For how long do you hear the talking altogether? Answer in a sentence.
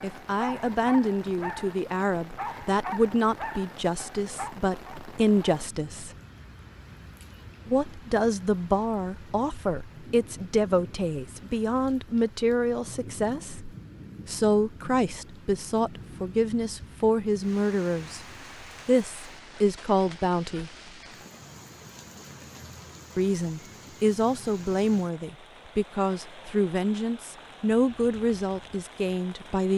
The talking can be heard for 25 seconds in total.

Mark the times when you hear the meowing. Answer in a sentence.
You can't hear the meowing here.